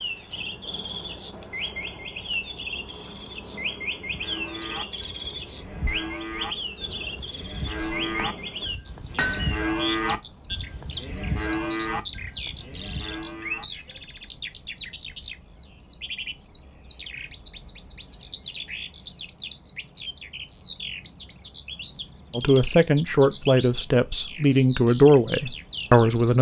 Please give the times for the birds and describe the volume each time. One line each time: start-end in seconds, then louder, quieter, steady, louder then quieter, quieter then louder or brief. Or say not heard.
0.0-26.3 steady.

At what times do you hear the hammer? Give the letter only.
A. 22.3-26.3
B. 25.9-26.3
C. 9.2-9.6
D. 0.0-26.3
C.